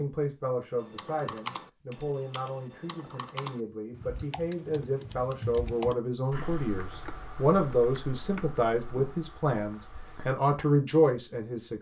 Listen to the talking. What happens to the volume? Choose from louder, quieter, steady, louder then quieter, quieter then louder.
louder.